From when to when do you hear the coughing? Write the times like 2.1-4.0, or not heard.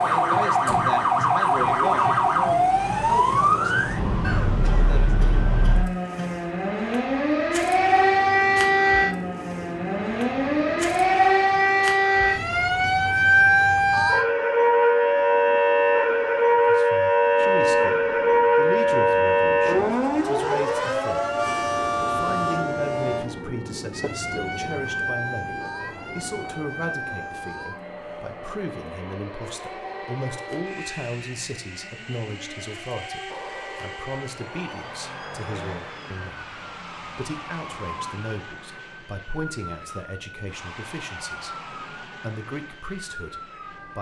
4.2-6.2.